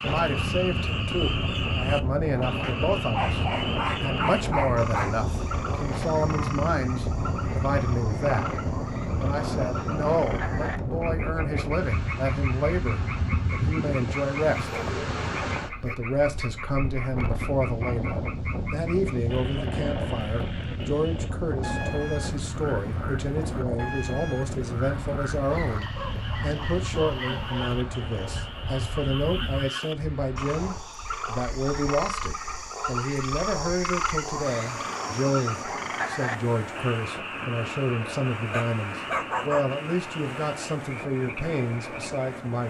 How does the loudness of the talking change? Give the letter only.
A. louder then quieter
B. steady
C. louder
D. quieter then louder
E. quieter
B.